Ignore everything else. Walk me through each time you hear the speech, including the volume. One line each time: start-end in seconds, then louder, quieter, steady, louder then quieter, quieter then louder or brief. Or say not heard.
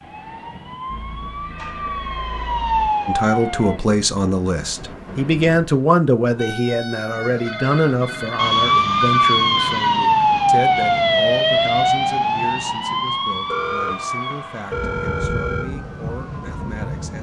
3.0-17.1 quieter.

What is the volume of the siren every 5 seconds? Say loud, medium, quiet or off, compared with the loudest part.
medium, loud, loud, quiet.